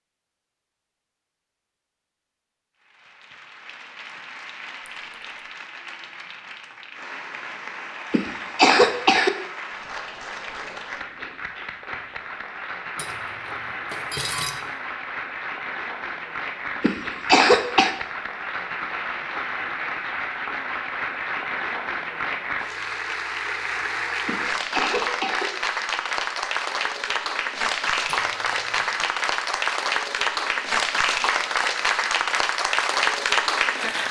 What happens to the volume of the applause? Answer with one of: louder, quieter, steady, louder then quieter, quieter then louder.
louder.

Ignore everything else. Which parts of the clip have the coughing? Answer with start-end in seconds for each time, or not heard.
8.1-9.3, 16.8-17.9, 24.2-25.4.